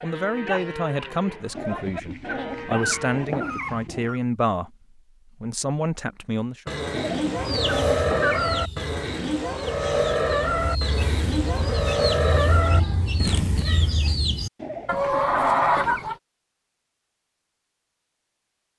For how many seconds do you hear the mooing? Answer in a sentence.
You can hear the mooing for 10 seconds altogether.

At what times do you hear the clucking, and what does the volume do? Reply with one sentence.
You can hear the clucking from 7.3 to 16.1 s, getting louder.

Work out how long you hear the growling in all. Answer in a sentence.
The growling can be heard for 6 seconds in total.